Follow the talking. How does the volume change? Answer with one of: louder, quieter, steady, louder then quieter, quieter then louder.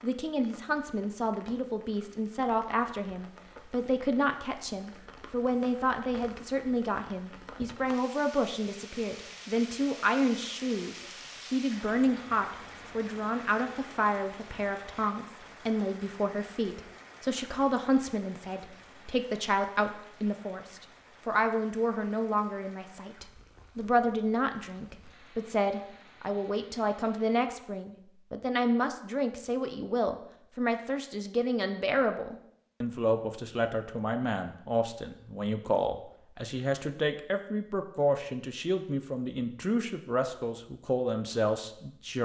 steady.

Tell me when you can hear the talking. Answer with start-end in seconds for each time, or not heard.
0.0-42.2.